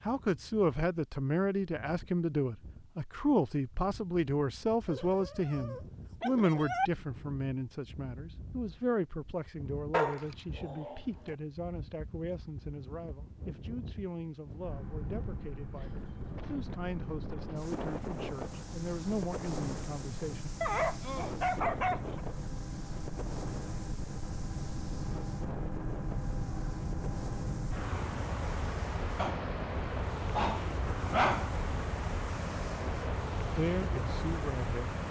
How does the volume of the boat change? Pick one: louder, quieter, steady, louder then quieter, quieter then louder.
louder.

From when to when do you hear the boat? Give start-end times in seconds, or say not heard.
14.6-35.0.